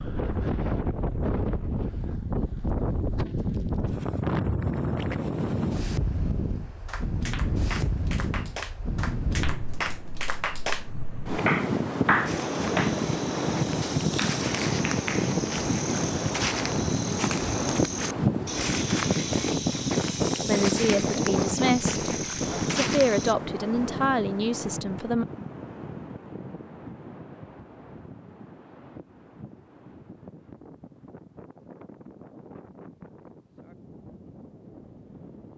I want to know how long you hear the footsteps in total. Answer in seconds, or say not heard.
11 s.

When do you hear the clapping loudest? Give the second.
12 s.